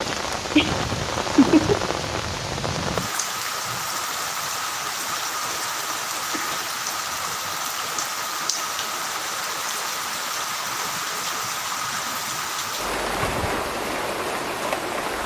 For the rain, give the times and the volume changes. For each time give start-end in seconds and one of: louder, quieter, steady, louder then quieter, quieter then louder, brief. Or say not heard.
0.0-15.2 steady.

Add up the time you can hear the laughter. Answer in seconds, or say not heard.
2 s.